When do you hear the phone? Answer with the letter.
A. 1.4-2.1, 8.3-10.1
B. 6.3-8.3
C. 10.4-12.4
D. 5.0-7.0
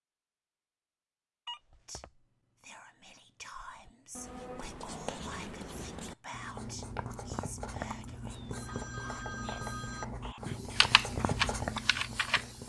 A.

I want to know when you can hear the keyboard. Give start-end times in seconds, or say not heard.
10.4-12.4.